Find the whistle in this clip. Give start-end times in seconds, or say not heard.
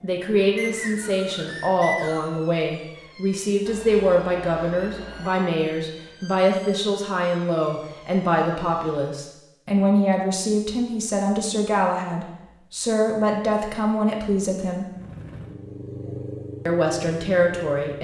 0.6-2.4.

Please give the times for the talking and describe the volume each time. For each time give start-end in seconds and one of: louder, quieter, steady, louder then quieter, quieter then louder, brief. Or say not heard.
0.0-14.9 steady
16.6-17.9 brief.